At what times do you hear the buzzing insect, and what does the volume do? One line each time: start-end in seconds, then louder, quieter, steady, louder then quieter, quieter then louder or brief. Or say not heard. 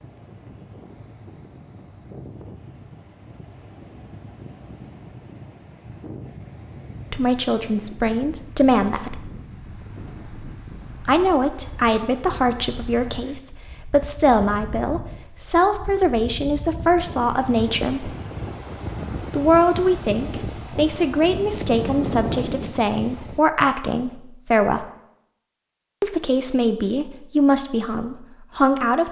not heard.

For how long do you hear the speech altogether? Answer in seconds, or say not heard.
18 s.